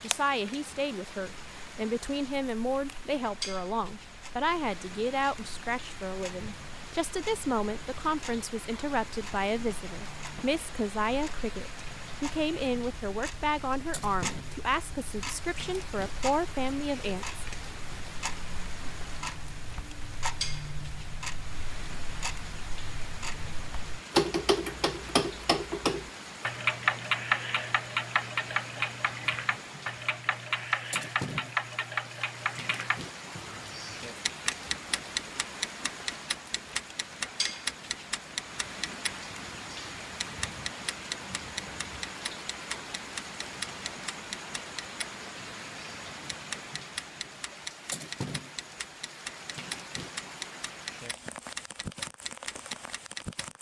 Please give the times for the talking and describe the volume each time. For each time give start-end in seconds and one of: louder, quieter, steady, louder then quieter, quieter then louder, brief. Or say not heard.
0.0-17.4 steady.